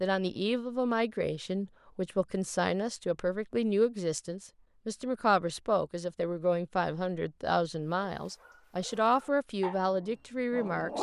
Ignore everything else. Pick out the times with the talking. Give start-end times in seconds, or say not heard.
0.0-10.9.